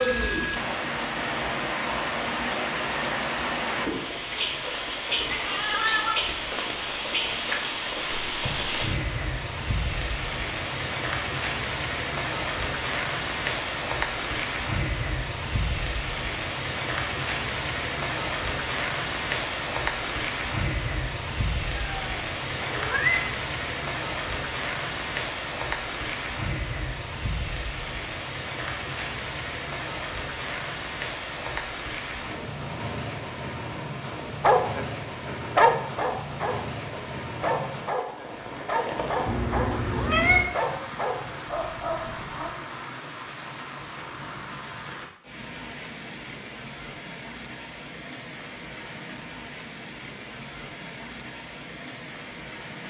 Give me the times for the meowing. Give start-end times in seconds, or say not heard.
5.2-6.2, 21.8-23.3, 39.2-40.5.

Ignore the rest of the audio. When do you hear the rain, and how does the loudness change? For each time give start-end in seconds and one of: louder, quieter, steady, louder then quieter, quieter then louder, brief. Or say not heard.
0.0-52.8 quieter.